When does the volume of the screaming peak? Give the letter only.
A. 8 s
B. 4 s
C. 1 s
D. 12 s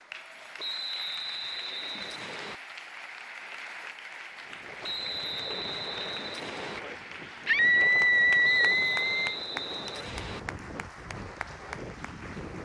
A.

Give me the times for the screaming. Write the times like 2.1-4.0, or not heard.
7.5-9.2.